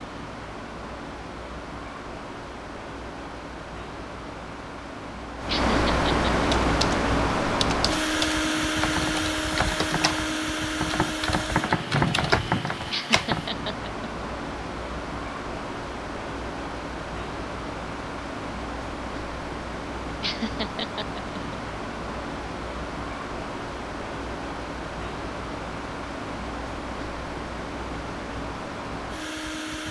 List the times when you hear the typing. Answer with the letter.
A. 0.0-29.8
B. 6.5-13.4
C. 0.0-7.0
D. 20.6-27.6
B.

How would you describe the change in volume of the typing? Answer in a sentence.
The loudness of the typing goes up.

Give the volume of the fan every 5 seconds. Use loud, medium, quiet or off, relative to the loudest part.
quiet, loud, medium, medium, medium, medium.